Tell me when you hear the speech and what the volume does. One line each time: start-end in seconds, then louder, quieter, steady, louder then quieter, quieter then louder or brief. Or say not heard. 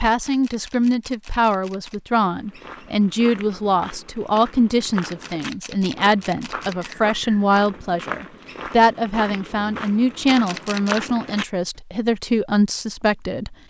0.0-13.6 steady.